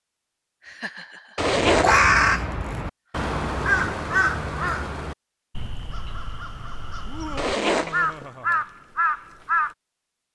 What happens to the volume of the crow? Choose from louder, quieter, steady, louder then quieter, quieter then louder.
quieter then louder.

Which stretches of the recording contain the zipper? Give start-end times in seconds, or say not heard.
1.4-2.0, 7.3-8.2.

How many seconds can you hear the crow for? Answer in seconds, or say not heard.
8 s.